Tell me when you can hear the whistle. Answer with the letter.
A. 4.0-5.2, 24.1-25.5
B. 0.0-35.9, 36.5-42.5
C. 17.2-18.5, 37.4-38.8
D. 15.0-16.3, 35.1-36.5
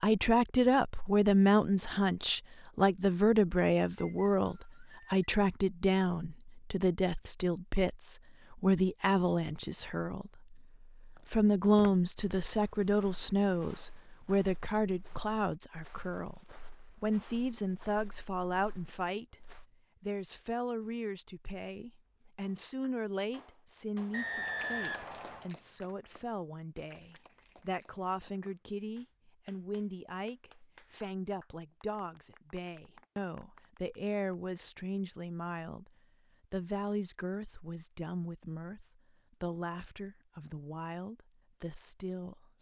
A.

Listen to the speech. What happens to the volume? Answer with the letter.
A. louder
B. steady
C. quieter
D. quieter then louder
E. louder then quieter
C.